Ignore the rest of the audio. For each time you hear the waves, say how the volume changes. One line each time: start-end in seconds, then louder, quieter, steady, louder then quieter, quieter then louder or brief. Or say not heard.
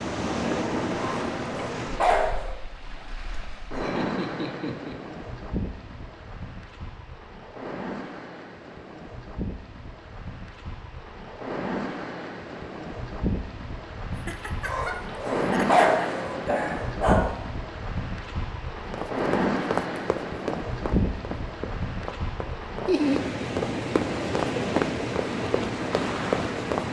0.0-26.8 quieter then louder.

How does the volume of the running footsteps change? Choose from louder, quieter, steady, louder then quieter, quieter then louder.
quieter then louder.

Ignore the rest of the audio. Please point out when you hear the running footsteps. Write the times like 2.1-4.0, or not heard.
18.9-26.8.